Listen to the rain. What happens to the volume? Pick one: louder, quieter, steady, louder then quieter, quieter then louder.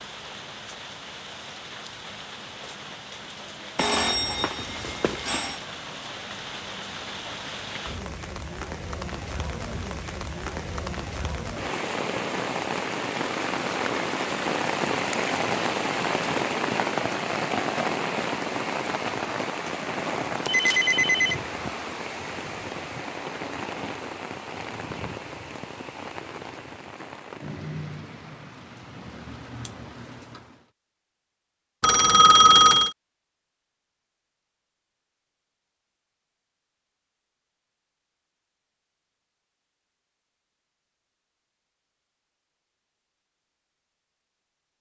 louder then quieter.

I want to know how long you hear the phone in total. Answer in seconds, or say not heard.
4 s.